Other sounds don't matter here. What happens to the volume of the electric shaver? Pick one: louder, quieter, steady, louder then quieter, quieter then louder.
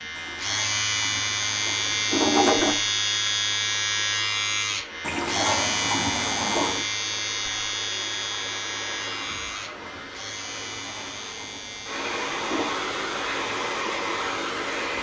quieter.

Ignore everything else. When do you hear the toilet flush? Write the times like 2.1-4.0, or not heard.
0.1-2.8, 5.0-6.8, 10.5-12.7.